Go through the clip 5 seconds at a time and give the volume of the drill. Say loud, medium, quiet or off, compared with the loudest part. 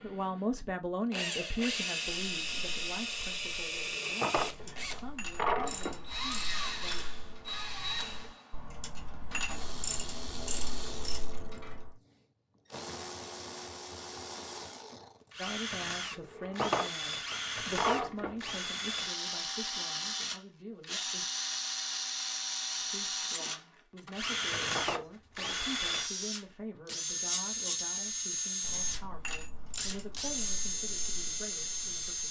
loud, medium, medium, loud, loud, loud, loud.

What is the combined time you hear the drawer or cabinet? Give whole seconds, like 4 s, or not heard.
5 s.